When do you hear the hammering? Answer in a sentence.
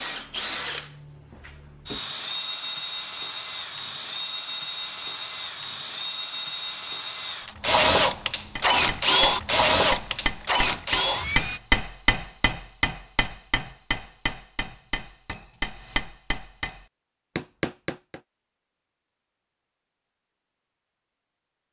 You can hear the hammering from 8.6 to 18.2 s.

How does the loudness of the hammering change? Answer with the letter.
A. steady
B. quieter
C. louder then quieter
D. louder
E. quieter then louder
C.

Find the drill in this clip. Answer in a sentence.
The drill can be heard from 0.0 to 11.6 s.